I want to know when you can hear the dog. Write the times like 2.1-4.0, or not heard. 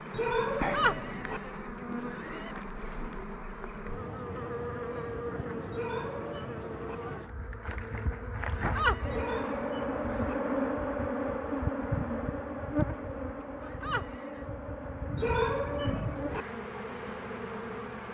0.1-1.4, 5.7-7.0, 9.1-10.3, 15.2-16.4.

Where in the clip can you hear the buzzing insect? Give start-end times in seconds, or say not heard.
0.0-18.0.